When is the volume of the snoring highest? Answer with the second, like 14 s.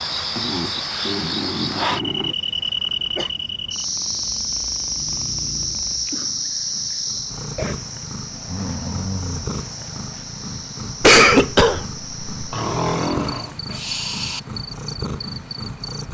13 s.